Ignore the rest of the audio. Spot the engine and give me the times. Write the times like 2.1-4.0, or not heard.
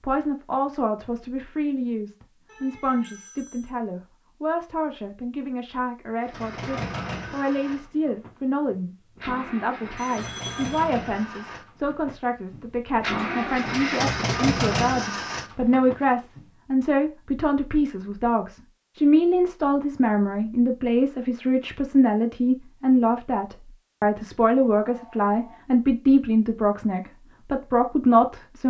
6.2-16.4.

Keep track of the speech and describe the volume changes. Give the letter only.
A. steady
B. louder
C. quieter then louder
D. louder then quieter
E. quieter
B.